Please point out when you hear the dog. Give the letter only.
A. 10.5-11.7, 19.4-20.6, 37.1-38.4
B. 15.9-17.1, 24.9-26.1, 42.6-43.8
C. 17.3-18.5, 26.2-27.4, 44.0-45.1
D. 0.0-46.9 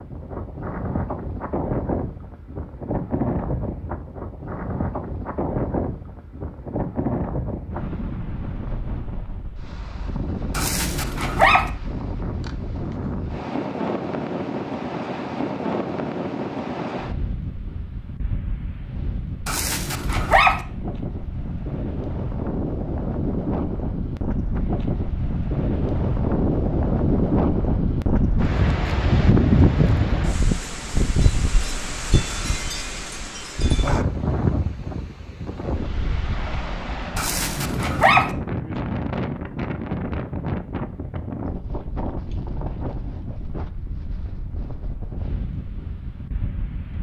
A.